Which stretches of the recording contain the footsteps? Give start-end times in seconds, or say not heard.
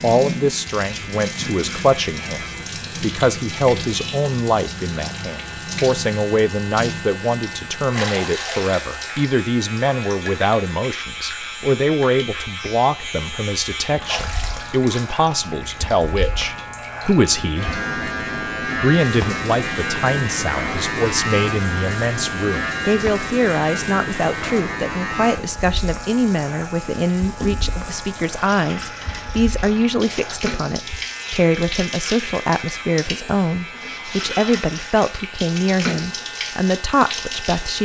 not heard.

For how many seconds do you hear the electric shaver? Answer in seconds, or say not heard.
38 s.